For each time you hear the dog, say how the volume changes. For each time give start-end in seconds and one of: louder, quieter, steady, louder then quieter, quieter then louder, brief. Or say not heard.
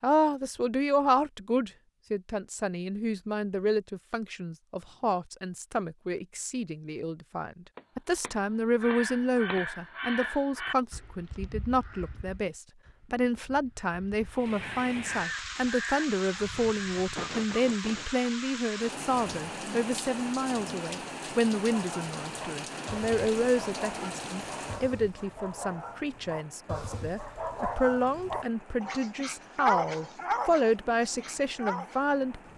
21.7-32.0 louder.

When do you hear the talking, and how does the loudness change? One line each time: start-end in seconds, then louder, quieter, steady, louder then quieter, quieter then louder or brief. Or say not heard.
0.0-32.5 steady.